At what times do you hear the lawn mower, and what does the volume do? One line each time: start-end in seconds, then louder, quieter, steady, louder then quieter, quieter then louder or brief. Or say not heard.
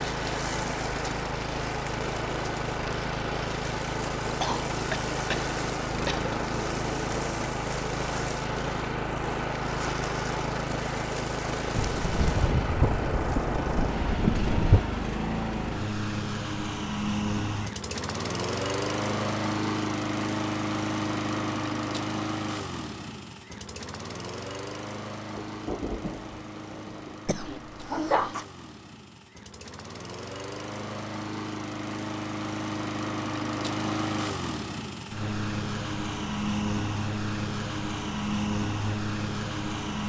0.0-40.0 quieter then louder.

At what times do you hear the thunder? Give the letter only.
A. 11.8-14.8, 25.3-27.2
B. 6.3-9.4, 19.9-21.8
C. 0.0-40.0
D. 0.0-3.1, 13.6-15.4
A.